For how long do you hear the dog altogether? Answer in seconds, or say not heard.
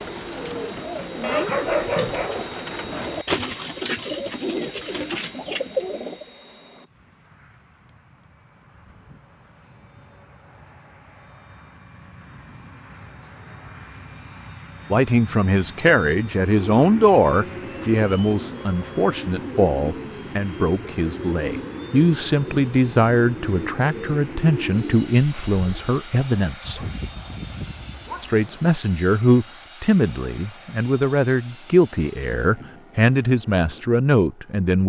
3 s.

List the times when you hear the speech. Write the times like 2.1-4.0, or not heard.
14.9-26.8, 28.2-34.8.